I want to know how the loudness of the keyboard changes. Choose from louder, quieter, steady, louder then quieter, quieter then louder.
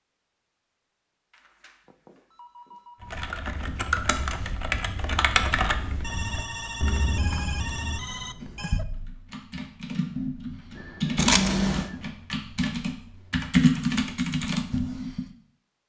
quieter then louder.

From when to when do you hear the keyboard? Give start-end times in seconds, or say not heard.
3.0-15.2.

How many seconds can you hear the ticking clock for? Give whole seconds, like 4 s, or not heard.
not heard.